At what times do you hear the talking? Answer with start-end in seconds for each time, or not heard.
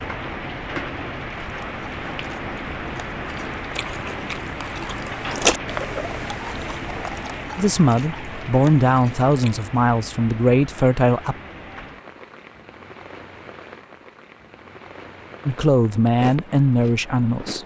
7.5-11.3, 15.4-17.6.